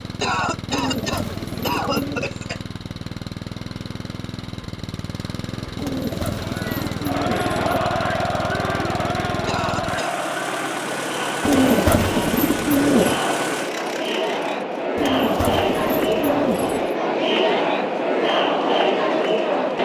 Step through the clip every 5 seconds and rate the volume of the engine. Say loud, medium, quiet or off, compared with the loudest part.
loud, loud, loud, off.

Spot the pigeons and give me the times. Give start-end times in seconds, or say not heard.
0.7-2.3, 5.8-7.8, 11.4-13.2, 14.9-16.9.